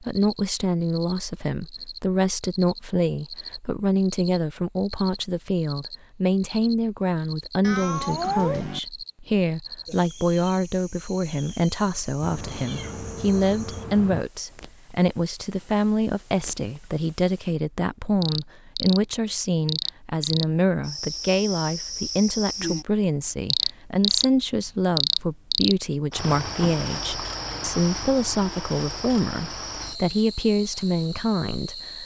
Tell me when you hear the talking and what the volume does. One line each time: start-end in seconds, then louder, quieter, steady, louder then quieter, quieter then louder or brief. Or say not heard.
0.0-32.0 steady.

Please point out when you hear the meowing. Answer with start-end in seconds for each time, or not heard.
7.6-8.8, 12.2-14.2, 26.4-27.8.